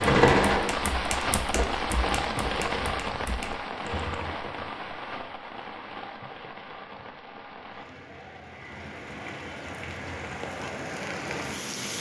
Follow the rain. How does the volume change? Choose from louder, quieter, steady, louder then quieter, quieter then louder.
quieter then louder.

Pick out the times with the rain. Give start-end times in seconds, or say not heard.
0.0-11.9.